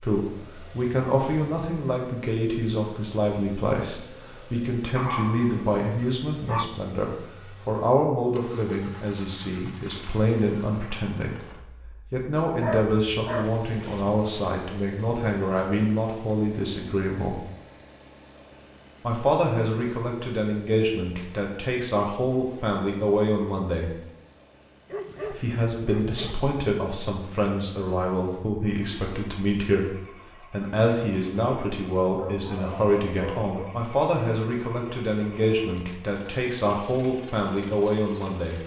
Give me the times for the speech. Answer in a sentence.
You can hear the speech from 0.0 to 17.4 s, from 19.1 to 23.9 s and from 25.3 to 38.6 s.